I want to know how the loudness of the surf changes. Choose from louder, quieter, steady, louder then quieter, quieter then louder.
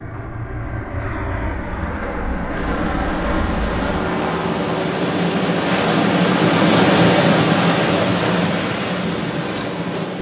louder then quieter.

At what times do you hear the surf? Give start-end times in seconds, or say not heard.
2.5-10.1.